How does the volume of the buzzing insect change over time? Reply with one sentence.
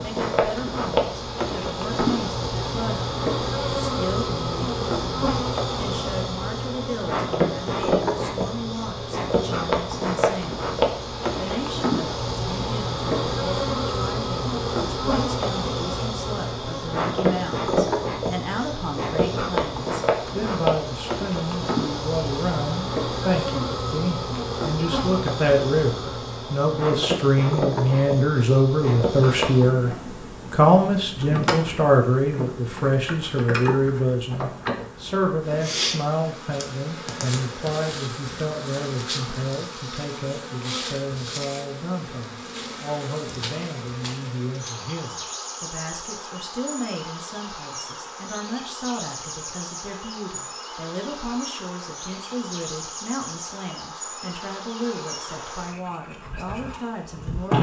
The loudness of the buzzing insect goes down.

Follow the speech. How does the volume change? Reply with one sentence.
The loudness of the speech goes up, then down.